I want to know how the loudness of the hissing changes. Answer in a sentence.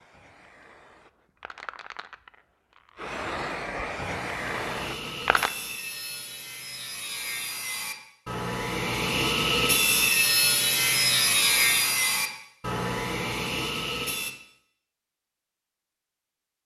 The volume of the hissing goes up.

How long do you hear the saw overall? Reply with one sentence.
You can hear the saw for 10 seconds altogether.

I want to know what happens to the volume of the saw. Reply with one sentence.
The loudness of the saw goes up, then down.